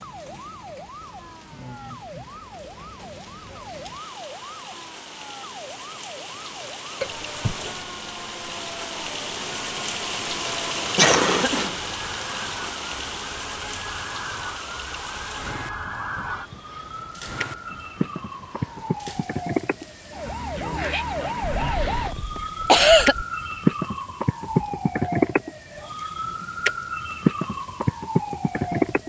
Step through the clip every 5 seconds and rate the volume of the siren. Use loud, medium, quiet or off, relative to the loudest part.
quiet, quiet, quiet, medium, loud, loud.